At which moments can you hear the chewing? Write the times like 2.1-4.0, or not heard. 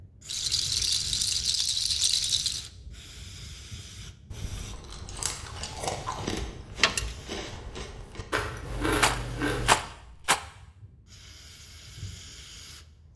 4.3-9.8.